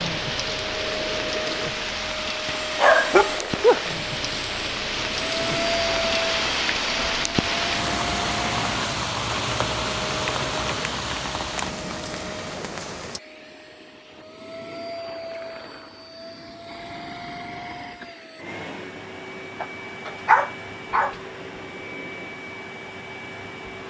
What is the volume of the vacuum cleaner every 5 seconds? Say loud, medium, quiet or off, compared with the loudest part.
loud, loud, medium, medium, medium.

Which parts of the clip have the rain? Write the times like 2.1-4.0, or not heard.
0.0-13.2.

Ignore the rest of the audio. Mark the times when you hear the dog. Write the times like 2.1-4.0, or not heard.
2.8-3.8, 19.6-21.1.